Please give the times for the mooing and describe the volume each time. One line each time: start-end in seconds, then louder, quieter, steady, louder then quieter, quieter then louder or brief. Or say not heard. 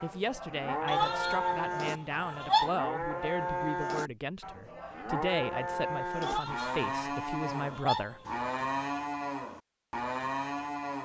0.0-11.0 steady.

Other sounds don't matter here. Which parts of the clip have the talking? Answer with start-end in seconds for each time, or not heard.
0.0-8.2.